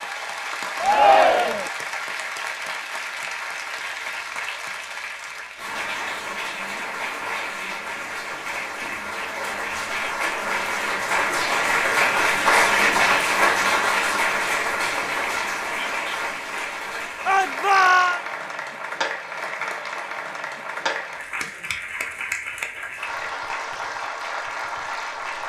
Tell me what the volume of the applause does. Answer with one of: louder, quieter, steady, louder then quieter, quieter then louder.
louder then quieter.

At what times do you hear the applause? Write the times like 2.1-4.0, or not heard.
0.0-25.4.